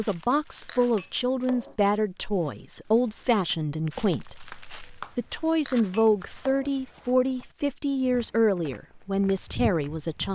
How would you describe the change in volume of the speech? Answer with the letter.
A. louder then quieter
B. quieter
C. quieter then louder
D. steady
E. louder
D.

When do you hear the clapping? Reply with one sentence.
You can hear the clapping from 4.5 to 6.3 s.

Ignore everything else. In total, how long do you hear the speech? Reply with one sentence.
The speech can be heard for 10 seconds in total.